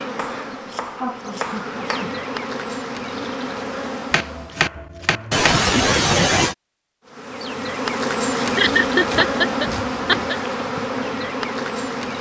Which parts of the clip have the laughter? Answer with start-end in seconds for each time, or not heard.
0.3-2.0, 5.3-6.5, 8.3-10.3.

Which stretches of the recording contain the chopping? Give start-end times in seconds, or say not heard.
0.1-2.0, 4.1-5.7, 8.9-10.3.